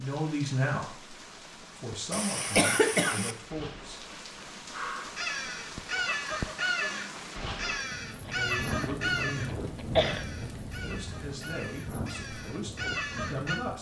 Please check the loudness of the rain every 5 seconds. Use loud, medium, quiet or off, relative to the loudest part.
medium, loud, loud.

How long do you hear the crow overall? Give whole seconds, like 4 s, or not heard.
9 s.